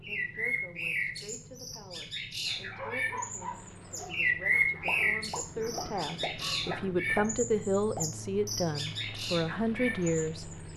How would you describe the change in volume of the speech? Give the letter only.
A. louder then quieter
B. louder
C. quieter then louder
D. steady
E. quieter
B.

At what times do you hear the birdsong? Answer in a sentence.
The birdsong can be heard from 0.0 to 10.7 s.